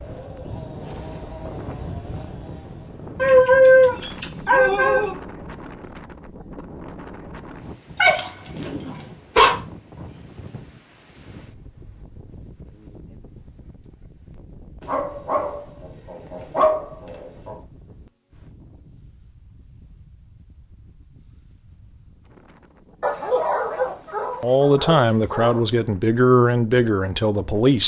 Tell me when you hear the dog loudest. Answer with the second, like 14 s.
4 s.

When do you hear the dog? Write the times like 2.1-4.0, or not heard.
3.1-5.2, 8.0-9.6, 14.8-17.6, 23.0-25.6.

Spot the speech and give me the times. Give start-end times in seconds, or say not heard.
24.4-27.8.